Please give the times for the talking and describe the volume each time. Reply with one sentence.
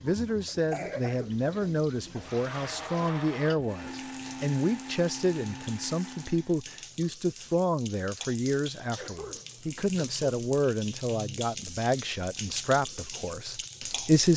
The talking can be heard from 0.0 to 14.3 s, at a steady volume.